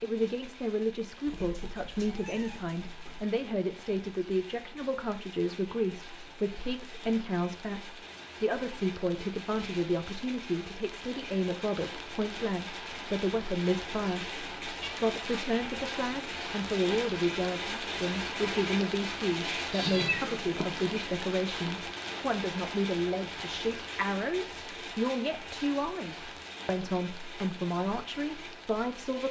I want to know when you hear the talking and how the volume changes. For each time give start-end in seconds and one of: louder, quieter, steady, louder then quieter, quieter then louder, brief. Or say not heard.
0.0-29.2 steady.